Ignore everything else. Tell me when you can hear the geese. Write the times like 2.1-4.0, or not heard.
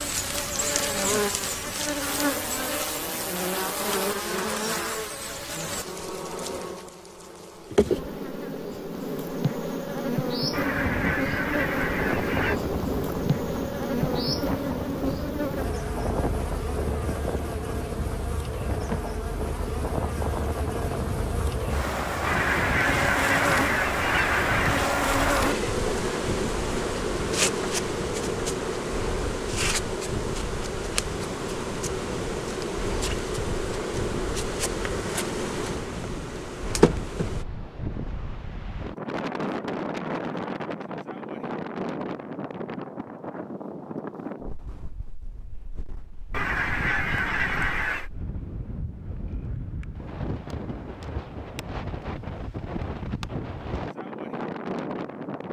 10.5-12.6, 22.2-24.9, 46.3-48.1.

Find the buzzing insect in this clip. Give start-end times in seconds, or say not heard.
0.0-37.5.